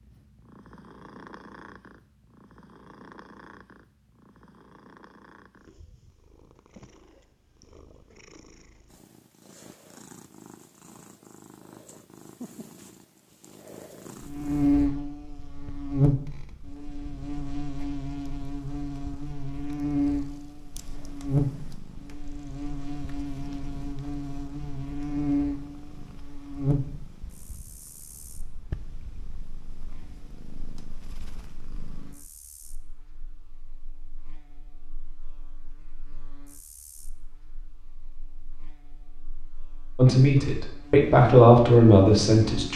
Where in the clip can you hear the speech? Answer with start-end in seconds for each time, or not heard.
40.0-42.7.